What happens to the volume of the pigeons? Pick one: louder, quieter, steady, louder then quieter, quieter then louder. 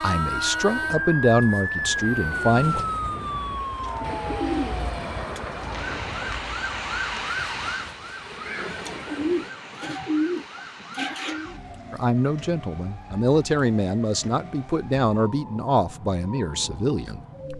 louder.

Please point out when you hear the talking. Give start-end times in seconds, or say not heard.
0.0-2.9, 11.9-17.5.